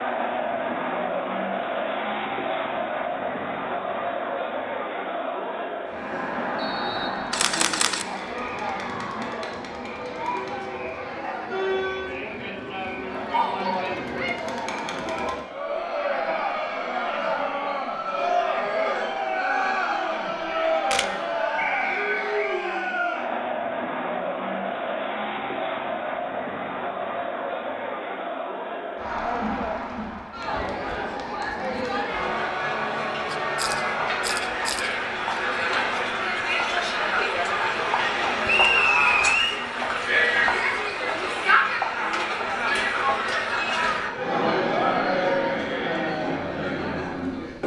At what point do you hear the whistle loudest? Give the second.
39 s.